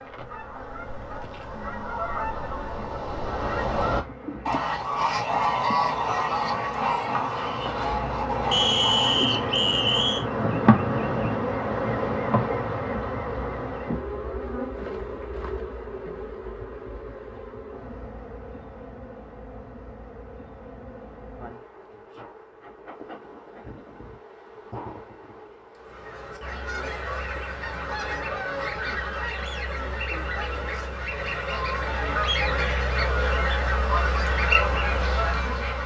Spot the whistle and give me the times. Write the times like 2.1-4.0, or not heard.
8.5-10.2.